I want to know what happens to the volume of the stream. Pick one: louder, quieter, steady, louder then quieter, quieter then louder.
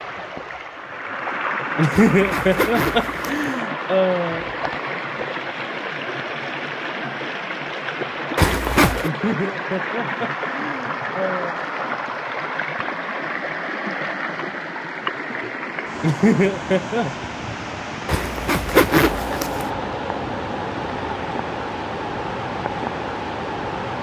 steady.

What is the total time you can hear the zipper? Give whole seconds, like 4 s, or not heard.
4 s.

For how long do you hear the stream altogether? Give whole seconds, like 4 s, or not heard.
24 s.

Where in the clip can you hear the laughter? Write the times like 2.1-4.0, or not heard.
1.8-4.5, 9.0-11.6, 16.0-17.1.